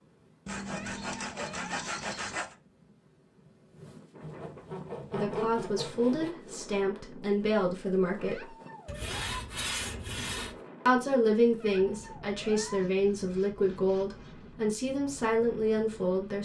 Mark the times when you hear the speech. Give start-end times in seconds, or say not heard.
5.1-8.6, 10.8-16.4.